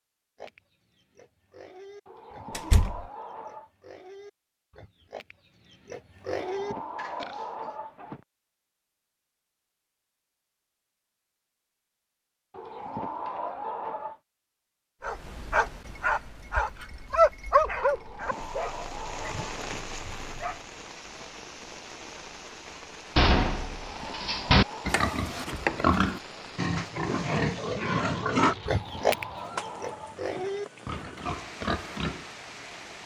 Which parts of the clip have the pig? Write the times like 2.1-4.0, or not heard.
0.3-7.8, 24.9-32.2.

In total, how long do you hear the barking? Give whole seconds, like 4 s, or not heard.
6 s.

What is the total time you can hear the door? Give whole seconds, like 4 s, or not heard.
2 s.